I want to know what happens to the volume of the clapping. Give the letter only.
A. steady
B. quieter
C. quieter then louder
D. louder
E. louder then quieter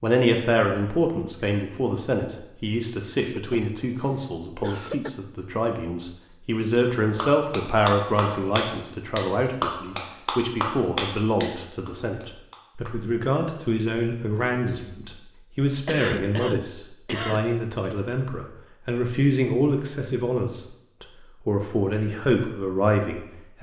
B.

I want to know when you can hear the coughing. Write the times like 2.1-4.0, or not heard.
3.1-5.1, 15.8-17.4.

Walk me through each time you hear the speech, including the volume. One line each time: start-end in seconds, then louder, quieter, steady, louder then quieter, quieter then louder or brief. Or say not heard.
0.0-23.5 steady.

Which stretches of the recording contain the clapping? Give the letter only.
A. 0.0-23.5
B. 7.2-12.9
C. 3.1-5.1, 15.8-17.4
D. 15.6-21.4
B.